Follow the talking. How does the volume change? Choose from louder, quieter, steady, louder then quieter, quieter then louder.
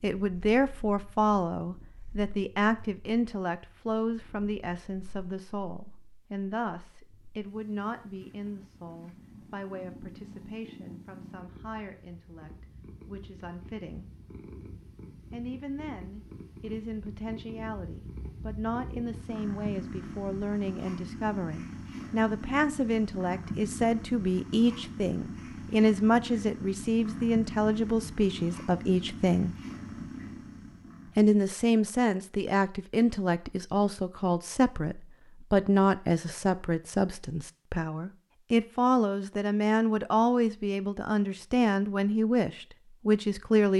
quieter then louder.